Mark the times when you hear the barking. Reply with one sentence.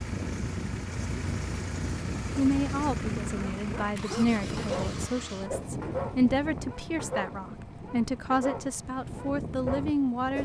The barking can be heard from 3.4 to 9.9 s.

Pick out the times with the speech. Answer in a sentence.
The speech can be heard from 2.4 to 10.3 s.